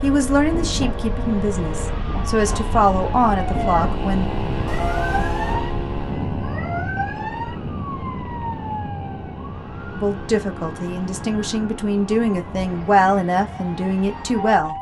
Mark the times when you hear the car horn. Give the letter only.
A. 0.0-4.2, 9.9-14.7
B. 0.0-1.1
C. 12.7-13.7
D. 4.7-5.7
D.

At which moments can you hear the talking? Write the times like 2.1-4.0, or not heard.
0.0-4.2, 9.9-14.7.